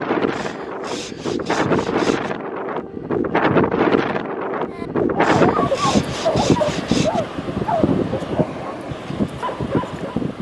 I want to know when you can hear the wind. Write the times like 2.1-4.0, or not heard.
0.0-10.3.